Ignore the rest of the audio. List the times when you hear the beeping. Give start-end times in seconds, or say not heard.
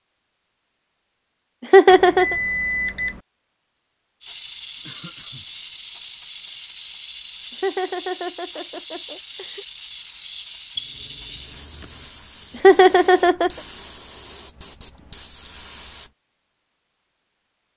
1.9-3.2, 10.8-11.8.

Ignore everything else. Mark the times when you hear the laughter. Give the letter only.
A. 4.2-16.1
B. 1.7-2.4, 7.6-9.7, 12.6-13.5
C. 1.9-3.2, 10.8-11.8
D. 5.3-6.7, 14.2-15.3
B.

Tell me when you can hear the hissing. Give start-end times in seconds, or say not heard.
4.2-16.1.